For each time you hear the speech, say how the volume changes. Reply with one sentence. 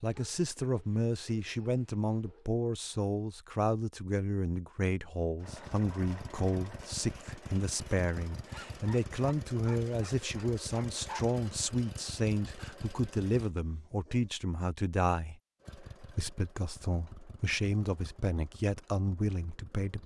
You can hear the speech from 0.0 to 20.0 s, at a steady volume.